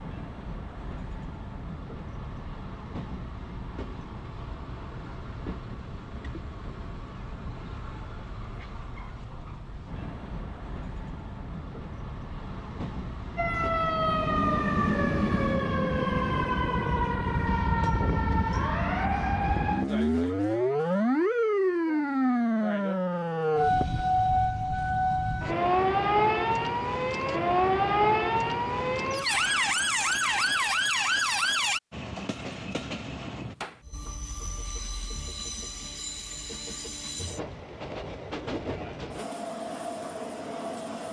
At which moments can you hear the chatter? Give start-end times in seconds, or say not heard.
not heard.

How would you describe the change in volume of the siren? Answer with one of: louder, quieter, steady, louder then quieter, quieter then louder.
steady.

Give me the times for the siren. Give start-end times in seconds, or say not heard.
13.3-31.8.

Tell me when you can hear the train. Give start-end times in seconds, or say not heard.
0.0-15.6, 31.9-41.0.